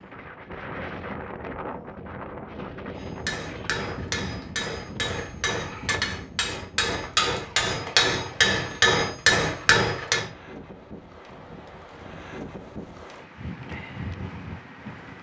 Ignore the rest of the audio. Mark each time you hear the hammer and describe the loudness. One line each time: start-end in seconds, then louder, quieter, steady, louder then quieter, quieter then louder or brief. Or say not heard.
3.0-10.3 louder.